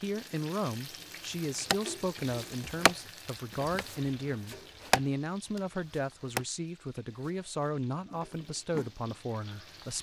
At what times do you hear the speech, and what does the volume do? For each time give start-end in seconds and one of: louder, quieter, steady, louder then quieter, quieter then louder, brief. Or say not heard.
0.0-9.9 steady.